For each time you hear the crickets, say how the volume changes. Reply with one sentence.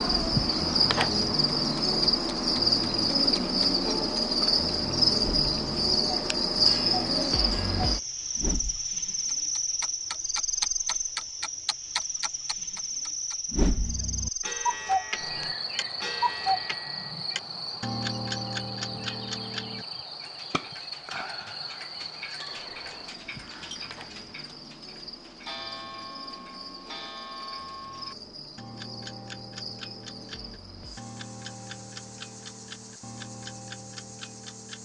You can hear the crickets from 0.0 to 34.8 s, getting quieter.